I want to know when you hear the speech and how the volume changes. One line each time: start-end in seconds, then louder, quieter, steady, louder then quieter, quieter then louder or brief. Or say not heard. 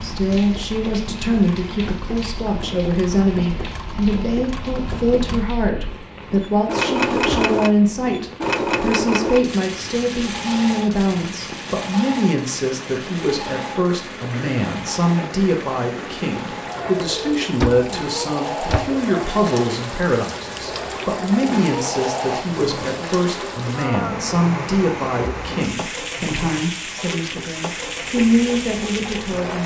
0.0-29.6 steady.